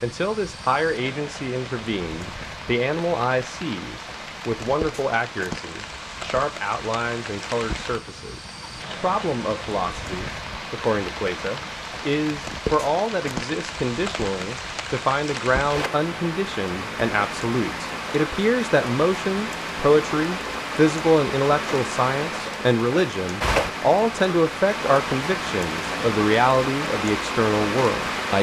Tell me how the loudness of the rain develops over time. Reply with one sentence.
The loudness of the rain goes up.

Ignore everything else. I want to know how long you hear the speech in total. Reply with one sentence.
You can hear the speech for 28 seconds altogether.